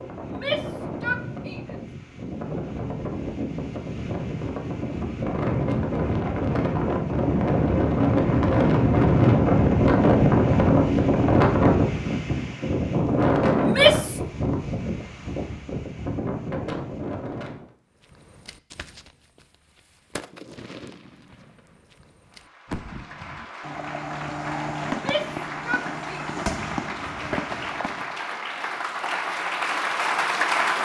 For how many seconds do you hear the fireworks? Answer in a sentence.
You can hear the fireworks for 10 seconds altogether.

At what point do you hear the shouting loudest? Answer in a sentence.
The loudest moment of the shouting is at 14 seconds.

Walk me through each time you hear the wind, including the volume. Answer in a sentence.
You can hear the wind from 0.0 to 17.7 s, getting louder then quieter.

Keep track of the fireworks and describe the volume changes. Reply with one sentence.
The loudness of the fireworks goes up.